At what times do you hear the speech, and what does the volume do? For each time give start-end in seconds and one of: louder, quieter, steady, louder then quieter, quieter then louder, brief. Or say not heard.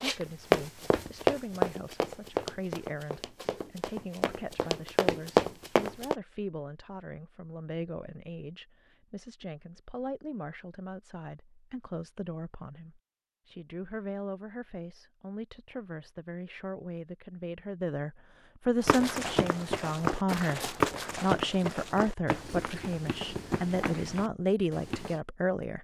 0.0-25.7 louder.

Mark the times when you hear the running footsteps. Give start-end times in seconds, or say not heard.
0.0-6.2, 18.8-25.2.